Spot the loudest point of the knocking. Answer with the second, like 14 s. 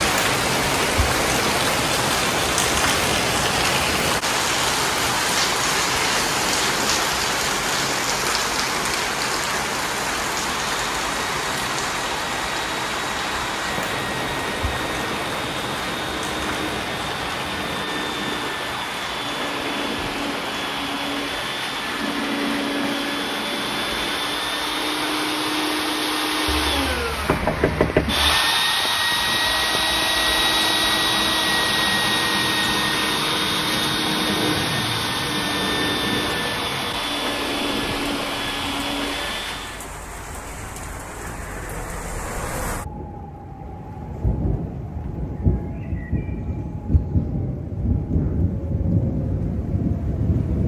28 s.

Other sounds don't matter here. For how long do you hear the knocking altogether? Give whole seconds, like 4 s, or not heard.
2 s.